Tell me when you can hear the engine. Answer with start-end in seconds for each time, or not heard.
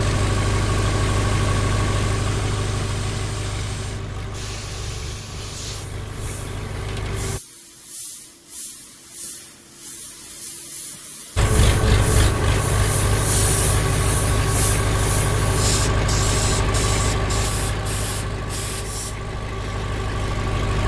0.0-7.4, 11.3-20.8.